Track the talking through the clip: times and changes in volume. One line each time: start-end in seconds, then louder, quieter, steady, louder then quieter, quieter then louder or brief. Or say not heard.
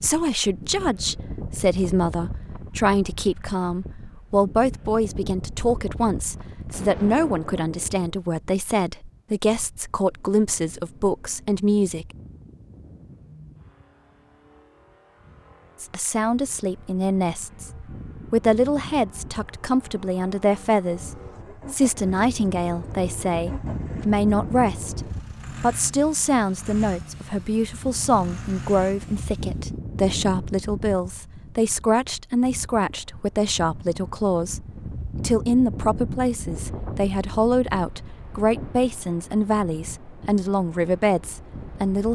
0.0-12.1 steady
15.8-17.7 brief
18.3-21.1 brief
21.7-42.0 steady.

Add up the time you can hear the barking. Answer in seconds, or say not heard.
not heard.